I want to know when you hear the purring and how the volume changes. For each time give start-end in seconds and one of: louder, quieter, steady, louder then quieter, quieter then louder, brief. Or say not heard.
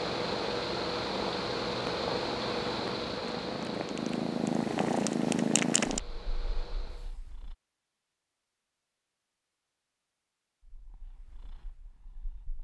0.0-7.5 louder then quieter
10.7-12.5 brief.